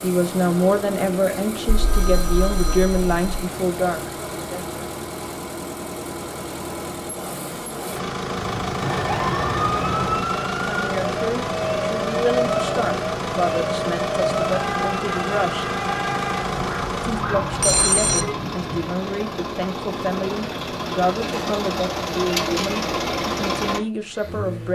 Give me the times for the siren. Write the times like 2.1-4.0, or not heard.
9.0-18.3.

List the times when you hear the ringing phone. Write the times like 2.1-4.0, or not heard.
1.6-3.2, 8.3-10.3, 17.6-18.4.